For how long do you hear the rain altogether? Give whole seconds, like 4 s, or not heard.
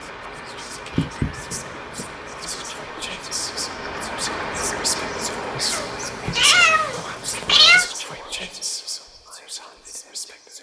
7 s.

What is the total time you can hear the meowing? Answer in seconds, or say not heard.
3 s.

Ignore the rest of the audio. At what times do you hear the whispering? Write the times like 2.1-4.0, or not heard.
0.0-10.5.